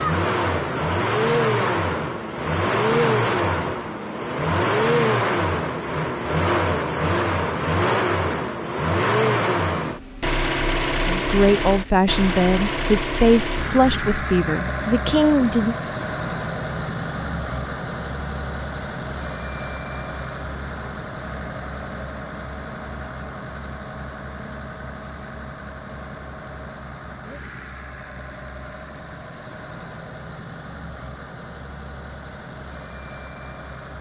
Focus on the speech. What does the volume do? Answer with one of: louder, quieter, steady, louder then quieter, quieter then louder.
steady.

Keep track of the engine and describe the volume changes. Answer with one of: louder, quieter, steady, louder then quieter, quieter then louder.
quieter.